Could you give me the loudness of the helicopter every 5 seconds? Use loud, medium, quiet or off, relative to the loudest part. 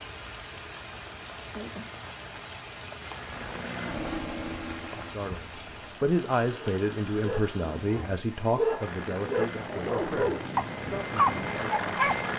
loud, medium, loud.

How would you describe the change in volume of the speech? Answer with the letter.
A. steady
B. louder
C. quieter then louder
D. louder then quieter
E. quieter
E.